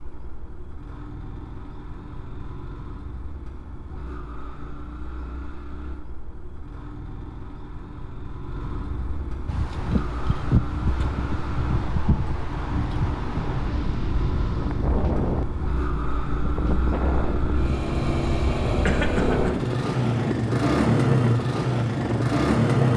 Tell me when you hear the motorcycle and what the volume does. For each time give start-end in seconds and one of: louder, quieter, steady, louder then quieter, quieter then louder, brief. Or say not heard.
0.0-22.9 louder.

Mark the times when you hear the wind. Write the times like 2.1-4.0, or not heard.
9.4-22.9.